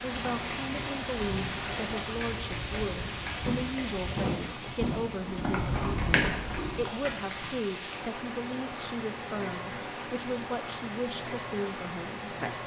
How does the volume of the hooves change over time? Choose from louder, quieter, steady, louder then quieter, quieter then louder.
louder.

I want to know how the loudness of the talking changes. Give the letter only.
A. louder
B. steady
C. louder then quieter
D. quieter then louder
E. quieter
B.